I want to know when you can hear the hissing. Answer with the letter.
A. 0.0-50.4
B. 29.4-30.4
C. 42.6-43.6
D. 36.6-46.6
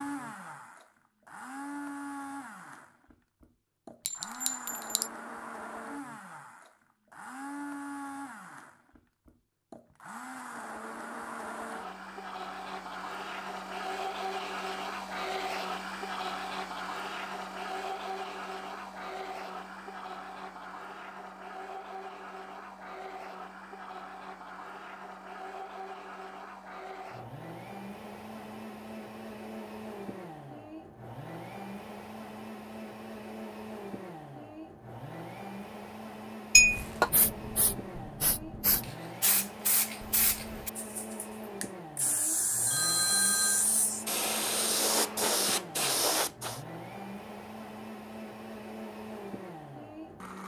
D.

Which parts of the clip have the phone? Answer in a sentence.
You can hear the phone from 42.6 to 43.6 s.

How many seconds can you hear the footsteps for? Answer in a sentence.
You can't hear the footsteps here.